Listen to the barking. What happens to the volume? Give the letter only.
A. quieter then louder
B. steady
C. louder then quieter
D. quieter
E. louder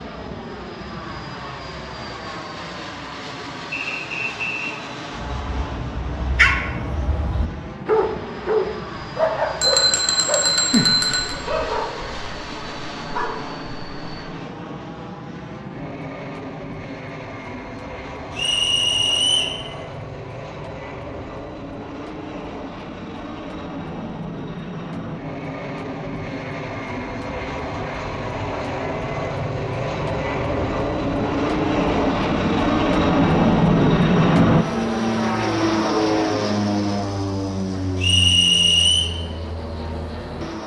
D.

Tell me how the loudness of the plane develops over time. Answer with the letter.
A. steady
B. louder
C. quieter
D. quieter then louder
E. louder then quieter
B.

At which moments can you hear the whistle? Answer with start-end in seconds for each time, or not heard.
3.7-4.8, 18.4-19.6, 38.0-39.1.